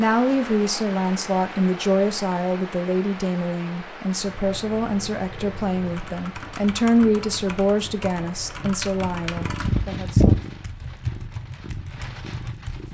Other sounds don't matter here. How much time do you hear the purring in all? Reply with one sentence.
The purring can be heard for 9 seconds in total.